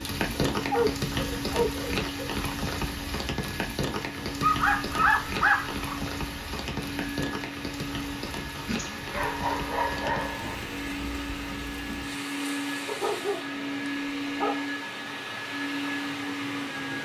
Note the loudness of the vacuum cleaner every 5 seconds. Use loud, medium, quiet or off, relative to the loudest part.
medium, medium, loud, loud.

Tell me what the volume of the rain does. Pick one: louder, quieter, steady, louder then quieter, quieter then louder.
quieter.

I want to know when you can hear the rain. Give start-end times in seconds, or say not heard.
0.0-13.4.